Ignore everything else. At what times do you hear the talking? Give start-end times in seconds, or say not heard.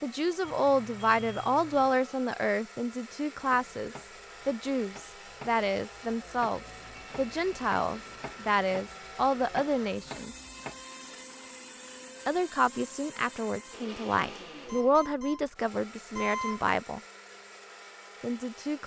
0.0-10.3, 12.2-17.0, 18.2-18.8.